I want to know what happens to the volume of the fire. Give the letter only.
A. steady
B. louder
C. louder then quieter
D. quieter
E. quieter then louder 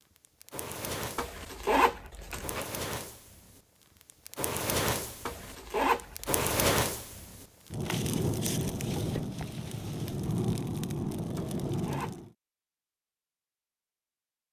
B.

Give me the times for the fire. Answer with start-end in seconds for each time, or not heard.
0.1-12.3.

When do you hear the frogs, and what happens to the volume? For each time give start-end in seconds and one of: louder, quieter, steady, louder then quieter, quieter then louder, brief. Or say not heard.
not heard.